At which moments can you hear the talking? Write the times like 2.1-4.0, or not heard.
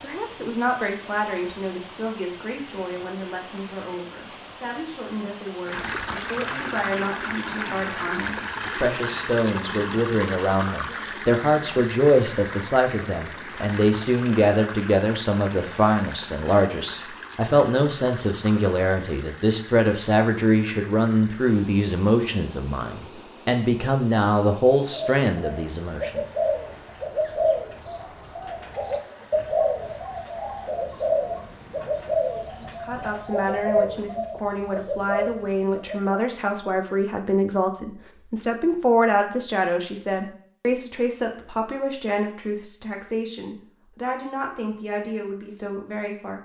0.0-26.2, 32.5-46.4.